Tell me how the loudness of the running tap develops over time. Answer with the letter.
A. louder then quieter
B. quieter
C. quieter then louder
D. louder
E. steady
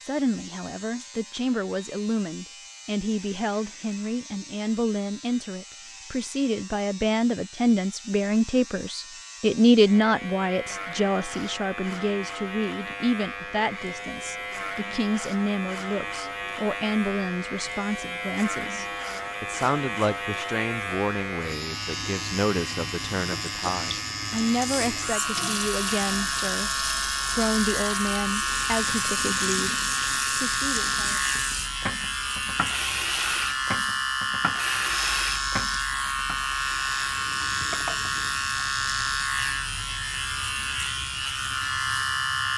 B.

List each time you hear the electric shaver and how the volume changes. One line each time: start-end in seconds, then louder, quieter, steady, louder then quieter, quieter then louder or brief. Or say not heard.
0.0-42.5 louder.